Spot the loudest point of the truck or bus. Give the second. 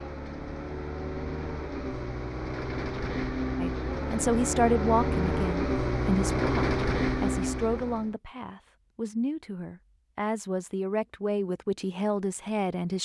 7 s.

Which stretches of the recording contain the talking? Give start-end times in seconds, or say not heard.
3.6-13.0.